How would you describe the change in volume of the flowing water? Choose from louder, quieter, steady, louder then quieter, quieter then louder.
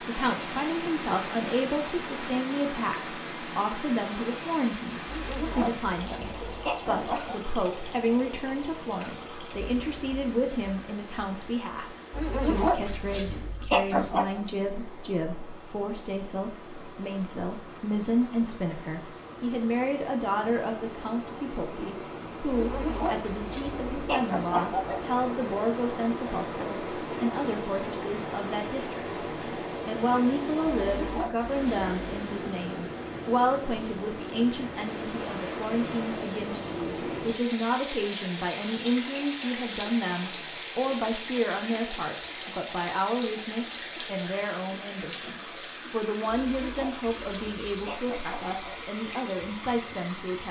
quieter then louder.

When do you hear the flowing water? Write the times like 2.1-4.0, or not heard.
0.0-50.4.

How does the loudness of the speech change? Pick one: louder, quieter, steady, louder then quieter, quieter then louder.
steady.